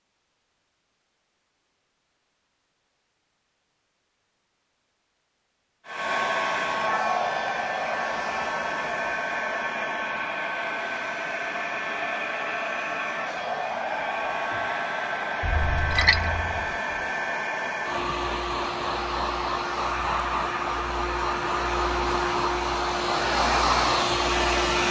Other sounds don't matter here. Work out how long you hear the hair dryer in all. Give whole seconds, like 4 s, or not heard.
19 s.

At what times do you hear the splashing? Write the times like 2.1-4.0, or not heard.
15.4-16.8.